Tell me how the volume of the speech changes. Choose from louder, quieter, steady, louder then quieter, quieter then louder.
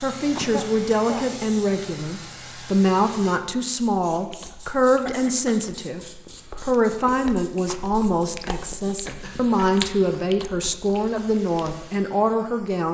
steady.